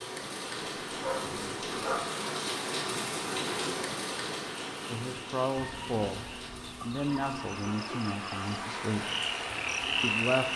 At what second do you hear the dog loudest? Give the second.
2 s.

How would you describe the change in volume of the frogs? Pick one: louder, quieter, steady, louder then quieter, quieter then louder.
louder.